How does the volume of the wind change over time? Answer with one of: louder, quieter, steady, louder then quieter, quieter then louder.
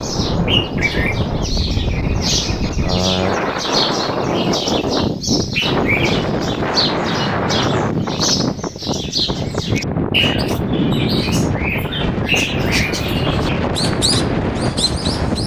steady.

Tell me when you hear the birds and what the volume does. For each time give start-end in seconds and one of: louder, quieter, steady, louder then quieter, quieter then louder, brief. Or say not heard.
0.0-15.4 steady.